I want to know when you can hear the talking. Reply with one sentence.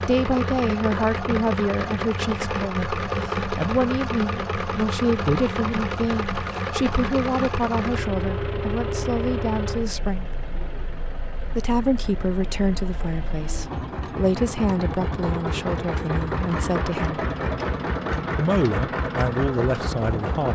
The talking can be heard from 0.1 to 10.3 s, from 11.6 to 17.2 s and from 18.4 to 20.4 s.